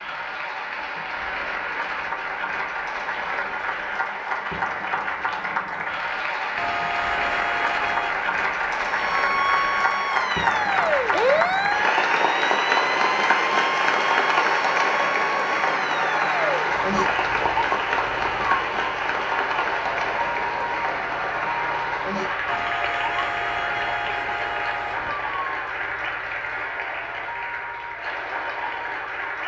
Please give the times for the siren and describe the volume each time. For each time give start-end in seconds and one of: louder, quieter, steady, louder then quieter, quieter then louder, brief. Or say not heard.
8.8-29.4 quieter.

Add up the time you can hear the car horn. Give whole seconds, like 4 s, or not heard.
4 s.